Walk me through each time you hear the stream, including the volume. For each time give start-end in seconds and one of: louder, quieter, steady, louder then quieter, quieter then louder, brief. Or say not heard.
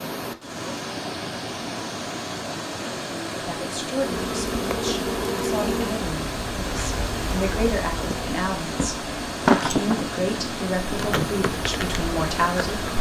0.0-12.9 steady.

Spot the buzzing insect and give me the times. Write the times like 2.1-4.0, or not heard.
4.0-12.9.